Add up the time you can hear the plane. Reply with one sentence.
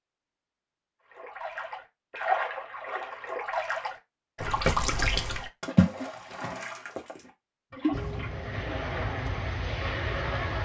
The plane can be heard for 3 seconds in total.